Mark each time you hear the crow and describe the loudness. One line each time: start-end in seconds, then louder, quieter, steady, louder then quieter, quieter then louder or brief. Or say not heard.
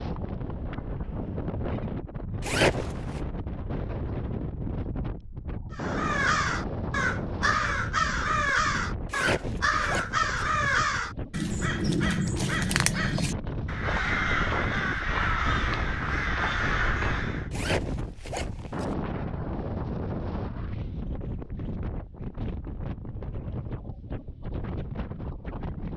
5.7-17.5 steady.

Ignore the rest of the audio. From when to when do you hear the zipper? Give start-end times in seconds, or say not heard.
2.4-3.2, 9.1-10.4, 17.5-18.9.